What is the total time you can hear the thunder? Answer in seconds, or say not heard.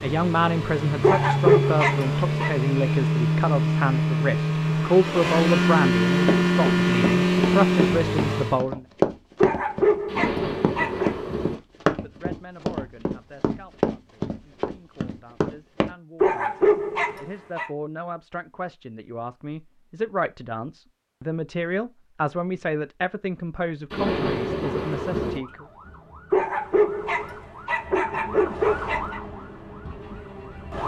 3 s.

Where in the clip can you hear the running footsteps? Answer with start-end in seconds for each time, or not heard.
6.2-15.9.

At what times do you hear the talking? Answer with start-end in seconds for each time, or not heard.
0.0-8.8, 12.0-25.6.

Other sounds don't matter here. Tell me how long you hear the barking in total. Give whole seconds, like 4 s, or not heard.
8 s.